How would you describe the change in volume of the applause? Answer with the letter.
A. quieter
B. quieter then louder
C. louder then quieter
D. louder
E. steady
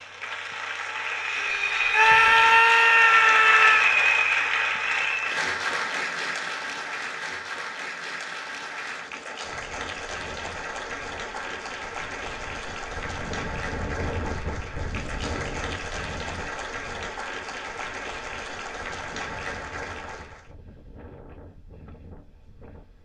A.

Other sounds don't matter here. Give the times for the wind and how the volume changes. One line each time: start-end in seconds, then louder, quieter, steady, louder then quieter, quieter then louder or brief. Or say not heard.
9.4-23.0 louder then quieter.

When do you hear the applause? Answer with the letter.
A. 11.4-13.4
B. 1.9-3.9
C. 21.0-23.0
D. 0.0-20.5
D.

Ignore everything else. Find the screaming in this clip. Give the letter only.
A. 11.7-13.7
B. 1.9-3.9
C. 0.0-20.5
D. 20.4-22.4
B.